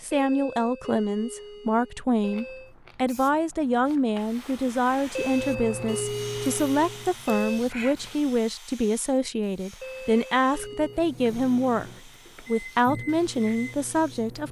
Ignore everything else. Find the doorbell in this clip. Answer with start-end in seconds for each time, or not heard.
0.1-2.8, 5.2-7.6, 9.8-11.1.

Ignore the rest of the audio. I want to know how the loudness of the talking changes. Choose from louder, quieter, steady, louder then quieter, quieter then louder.
steady.